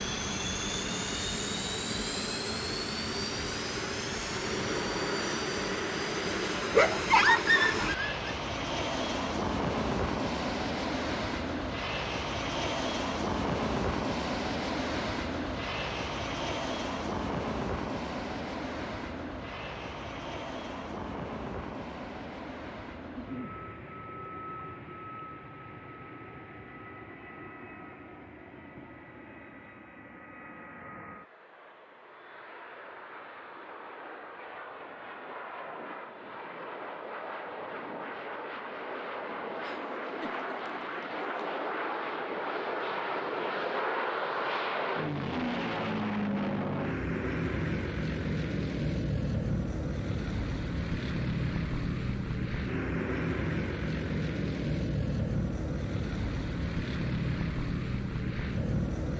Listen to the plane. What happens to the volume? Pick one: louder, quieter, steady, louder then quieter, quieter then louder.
quieter then louder.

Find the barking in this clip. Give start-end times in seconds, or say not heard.
6.7-8.2.